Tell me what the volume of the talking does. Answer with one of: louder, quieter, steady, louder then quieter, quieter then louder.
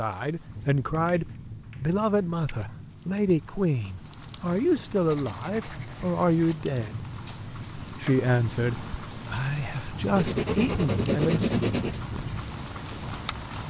steady.